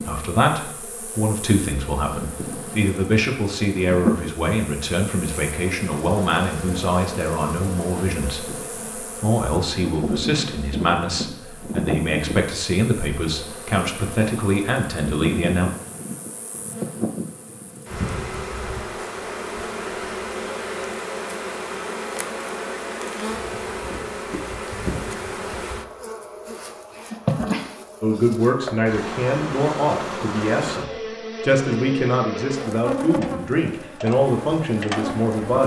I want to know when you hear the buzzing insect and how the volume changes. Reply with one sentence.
You can hear the buzzing insect from 0.0 to 35.6 s, at a steady volume.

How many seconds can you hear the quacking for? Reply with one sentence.
You can't hear the quacking here.